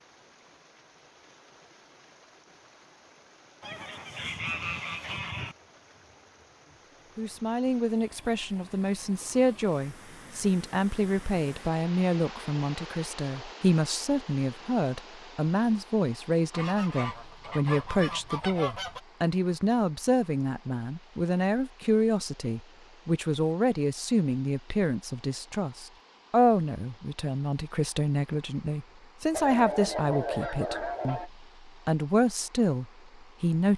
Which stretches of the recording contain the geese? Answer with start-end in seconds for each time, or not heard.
3.6-5.5, 16.5-19.0, 29.3-31.3.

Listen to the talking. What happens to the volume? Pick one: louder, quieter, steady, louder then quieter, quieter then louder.
steady.